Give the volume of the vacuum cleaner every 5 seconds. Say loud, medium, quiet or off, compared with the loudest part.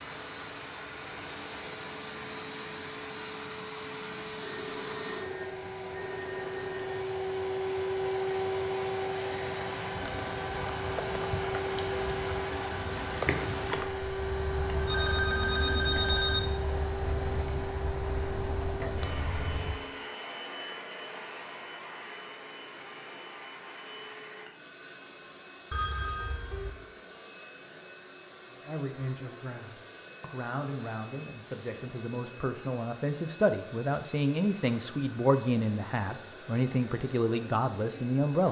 medium, loud, loud, loud, medium, quiet, quiet, quiet.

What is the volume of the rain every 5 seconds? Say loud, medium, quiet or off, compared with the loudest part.
medium, medium, loud, loud, off, off, off, off.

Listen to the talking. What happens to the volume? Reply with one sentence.
The volume of the talking goes up.